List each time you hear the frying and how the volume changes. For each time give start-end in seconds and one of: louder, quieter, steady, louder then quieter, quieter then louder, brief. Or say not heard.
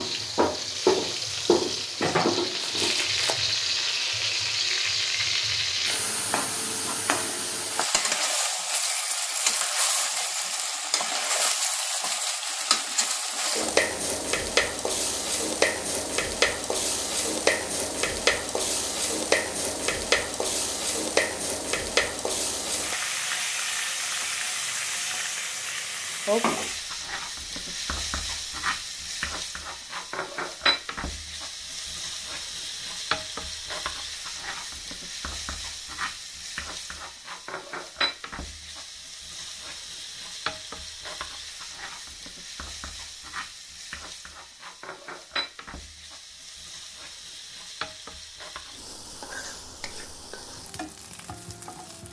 0.0-52.0 quieter.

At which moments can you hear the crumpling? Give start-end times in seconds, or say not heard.
2.0-3.4.